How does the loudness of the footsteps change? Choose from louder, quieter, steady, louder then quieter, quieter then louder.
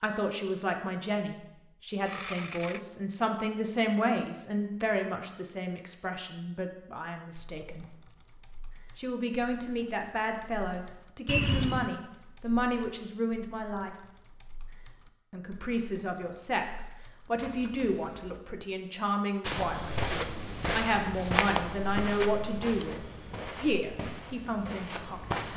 quieter.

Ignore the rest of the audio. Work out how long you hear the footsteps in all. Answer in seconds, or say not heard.
6 s.